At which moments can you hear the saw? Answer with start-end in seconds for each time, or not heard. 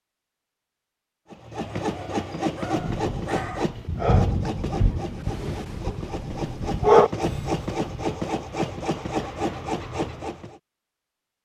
1.3-10.6.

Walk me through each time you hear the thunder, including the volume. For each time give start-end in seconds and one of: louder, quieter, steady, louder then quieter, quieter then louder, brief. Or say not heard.
2.7-7.0 louder then quieter.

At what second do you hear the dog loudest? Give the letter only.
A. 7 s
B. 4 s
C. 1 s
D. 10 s
A.